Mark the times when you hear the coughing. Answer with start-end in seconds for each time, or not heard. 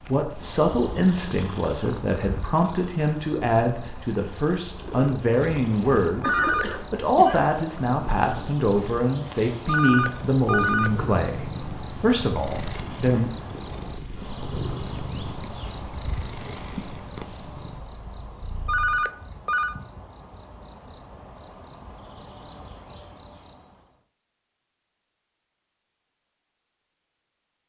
6.2-7.5.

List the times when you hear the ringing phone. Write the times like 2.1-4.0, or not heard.
6.2-6.7, 9.7-10.9, 18.6-19.8.